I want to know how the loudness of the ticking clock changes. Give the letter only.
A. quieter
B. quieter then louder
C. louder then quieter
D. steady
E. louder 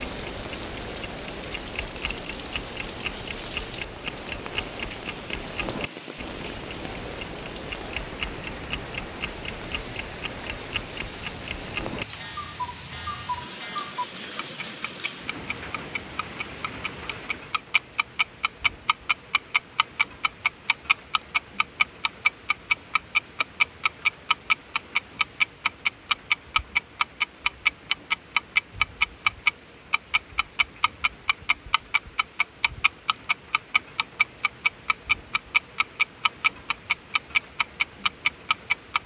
E.